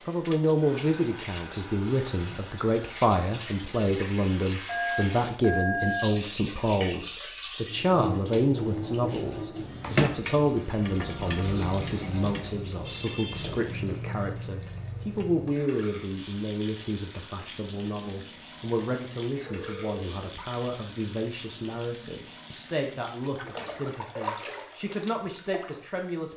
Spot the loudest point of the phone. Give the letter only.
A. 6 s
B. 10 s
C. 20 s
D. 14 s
A.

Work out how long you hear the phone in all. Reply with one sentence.
You can hear the phone for 3 seconds altogether.